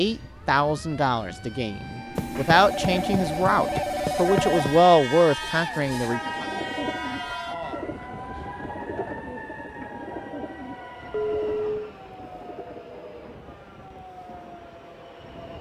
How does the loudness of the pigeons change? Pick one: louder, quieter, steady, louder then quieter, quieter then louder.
quieter.